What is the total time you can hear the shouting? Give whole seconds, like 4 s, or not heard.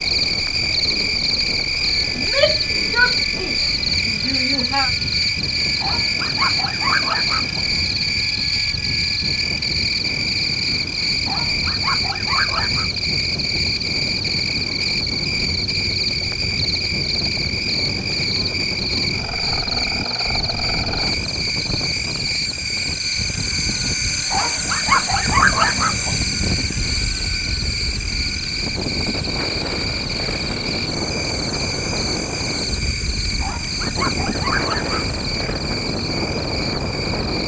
3 s.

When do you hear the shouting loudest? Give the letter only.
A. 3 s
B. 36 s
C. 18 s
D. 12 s
A.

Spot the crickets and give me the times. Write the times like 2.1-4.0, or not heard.
0.0-37.4.